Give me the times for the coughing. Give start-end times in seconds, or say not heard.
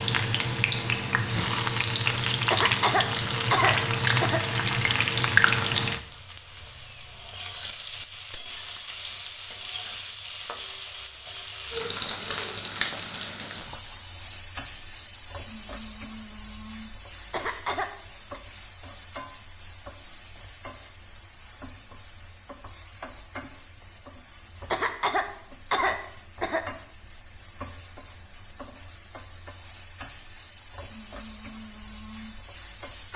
2.5-4.4, 17.3-18.4, 24.7-26.6.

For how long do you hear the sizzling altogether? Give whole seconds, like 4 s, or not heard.
33 s.